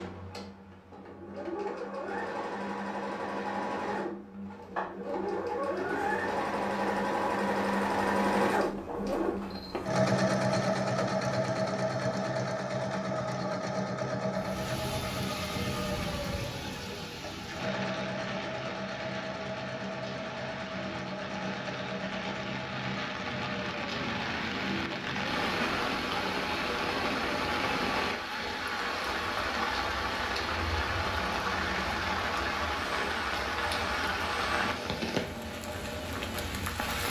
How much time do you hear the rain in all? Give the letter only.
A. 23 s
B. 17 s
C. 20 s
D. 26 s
A.